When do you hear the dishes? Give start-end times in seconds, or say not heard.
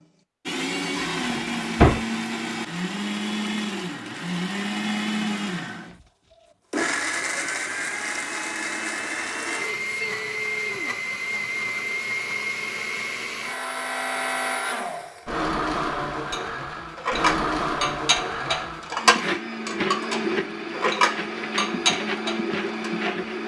16.3-22.9.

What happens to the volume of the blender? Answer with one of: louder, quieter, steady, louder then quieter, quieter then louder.
steady.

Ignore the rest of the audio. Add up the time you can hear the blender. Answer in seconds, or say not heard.
23 s.